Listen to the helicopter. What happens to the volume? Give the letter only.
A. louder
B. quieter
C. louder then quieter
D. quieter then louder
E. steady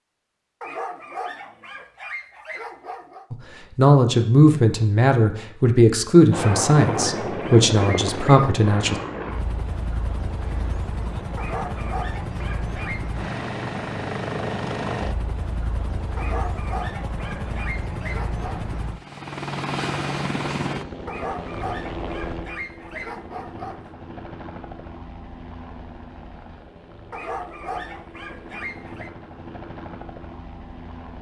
B.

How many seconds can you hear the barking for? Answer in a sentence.
The barking can be heard for 14 seconds in total.